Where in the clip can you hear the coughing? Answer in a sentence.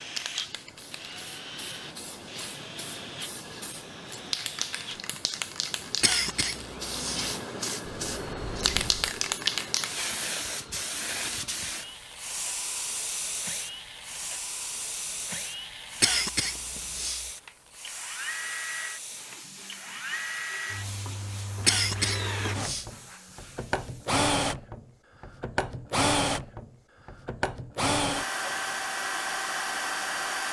The coughing can be heard from 6.0 to 7.2 s, from 16.0 to 17.2 s and from 21.6 to 22.9 s.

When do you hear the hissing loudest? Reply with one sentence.
The volume of the hissing peaks at 9 seconds.